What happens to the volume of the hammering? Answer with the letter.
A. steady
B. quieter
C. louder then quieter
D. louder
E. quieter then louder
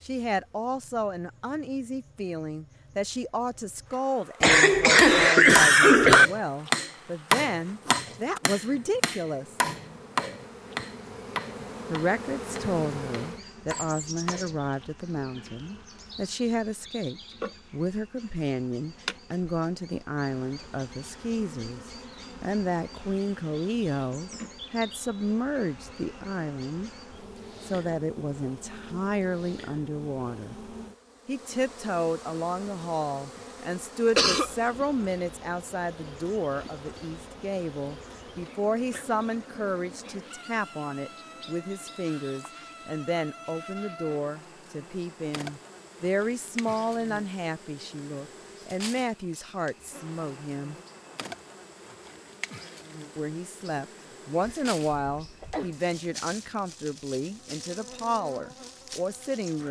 B.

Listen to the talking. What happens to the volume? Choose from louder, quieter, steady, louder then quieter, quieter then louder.
steady.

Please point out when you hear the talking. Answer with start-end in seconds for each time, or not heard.
0.0-9.6, 11.9-26.9, 27.6-50.8, 53.1-59.6.